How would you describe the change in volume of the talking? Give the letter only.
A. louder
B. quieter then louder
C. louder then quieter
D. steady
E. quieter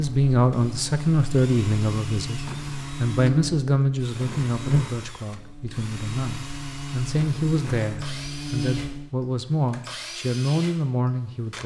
B.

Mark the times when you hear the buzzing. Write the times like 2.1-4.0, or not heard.
0.0-9.1.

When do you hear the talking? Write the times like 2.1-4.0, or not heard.
0.0-11.6.